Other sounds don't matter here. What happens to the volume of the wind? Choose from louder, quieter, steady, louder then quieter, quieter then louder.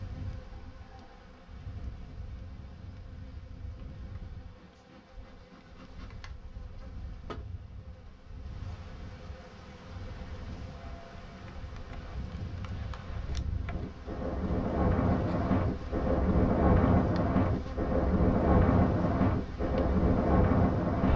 louder.